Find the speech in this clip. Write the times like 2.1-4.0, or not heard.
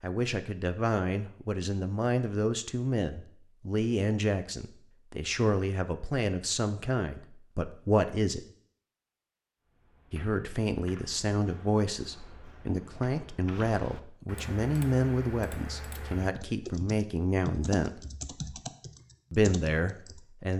0.0-8.4, 10.1-18.0, 19.3-20.5.